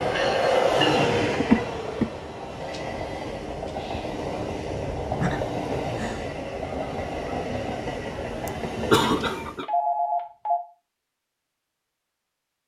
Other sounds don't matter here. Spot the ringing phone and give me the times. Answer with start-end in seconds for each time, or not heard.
2.6-4.2, 9.2-10.6.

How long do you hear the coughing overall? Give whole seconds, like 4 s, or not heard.
3 s.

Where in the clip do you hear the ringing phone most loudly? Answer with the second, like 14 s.
10 s.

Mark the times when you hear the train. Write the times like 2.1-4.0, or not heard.
0.0-9.6.